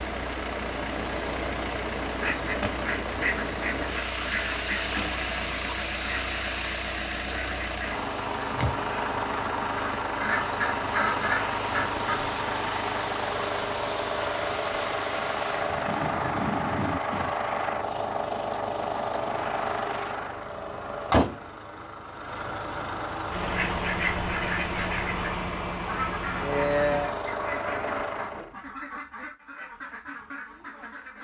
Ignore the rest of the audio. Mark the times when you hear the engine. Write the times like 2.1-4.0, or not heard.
0.0-28.6.